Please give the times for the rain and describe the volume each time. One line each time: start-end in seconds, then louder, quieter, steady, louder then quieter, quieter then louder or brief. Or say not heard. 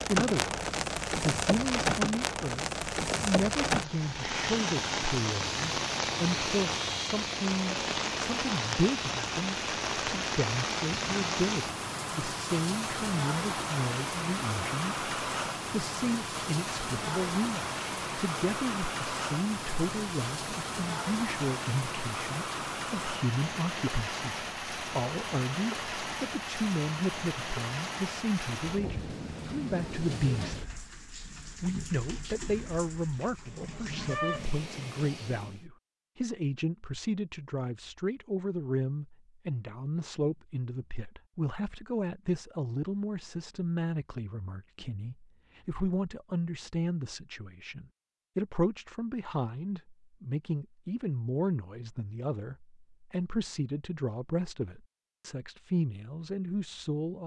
0.0-35.6 quieter.